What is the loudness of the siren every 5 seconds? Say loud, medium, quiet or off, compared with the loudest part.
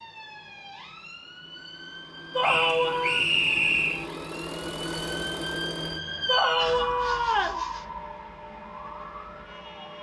medium, loud.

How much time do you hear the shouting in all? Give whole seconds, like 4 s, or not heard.
2 s.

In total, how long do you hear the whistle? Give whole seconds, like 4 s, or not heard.
2 s.